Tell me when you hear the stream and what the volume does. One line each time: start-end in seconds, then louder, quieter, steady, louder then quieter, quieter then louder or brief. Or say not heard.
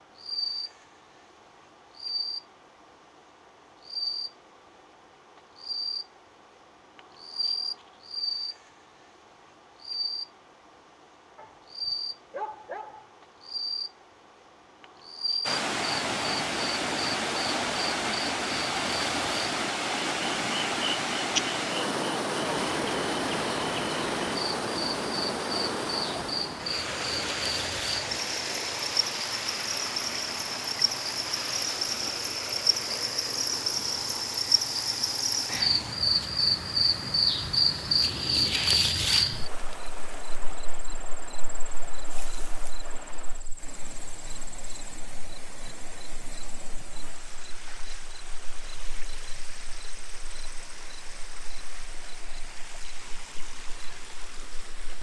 15.4-54.9 quieter.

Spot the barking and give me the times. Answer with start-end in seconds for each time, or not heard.
11.3-13.1.